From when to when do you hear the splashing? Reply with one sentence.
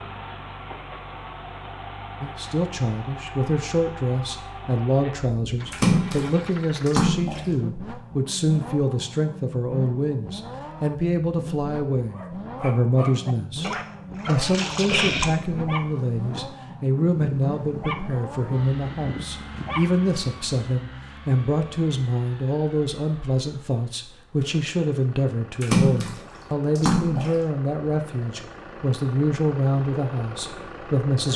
The splashing can be heard from 5.7 to 7.5 s, from 13.6 to 15.3 s and from 25.6 to 27.4 s.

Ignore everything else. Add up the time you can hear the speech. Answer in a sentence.
The speech can be heard for 29 seconds in total.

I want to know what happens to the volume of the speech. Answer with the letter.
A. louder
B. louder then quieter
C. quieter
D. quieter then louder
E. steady
E.